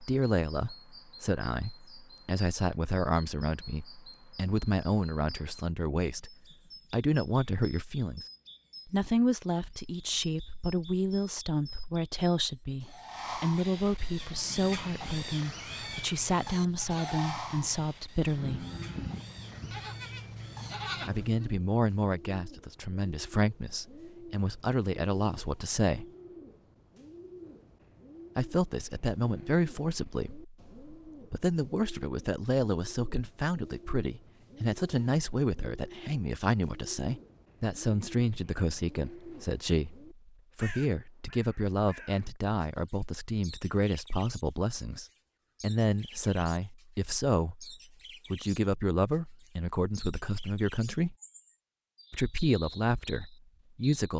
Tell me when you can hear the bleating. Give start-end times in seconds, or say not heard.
14.3-21.6.